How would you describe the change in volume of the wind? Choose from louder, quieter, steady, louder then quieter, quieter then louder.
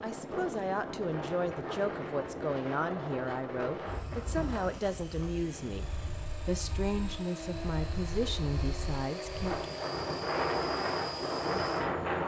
quieter then louder.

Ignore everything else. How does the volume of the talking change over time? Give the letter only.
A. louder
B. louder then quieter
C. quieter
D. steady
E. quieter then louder
D.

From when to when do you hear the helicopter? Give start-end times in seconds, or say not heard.
0.0-12.2.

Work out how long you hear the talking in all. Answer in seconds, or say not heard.
9 s.